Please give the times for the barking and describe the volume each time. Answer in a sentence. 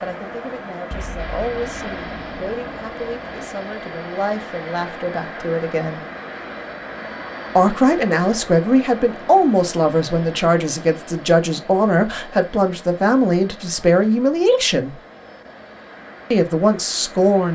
The barking can't be heard in this clip.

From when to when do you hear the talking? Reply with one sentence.
The talking can be heard from 0.0 to 6.0 s, from 7.5 to 14.9 s and from 16.3 to 17.5 s.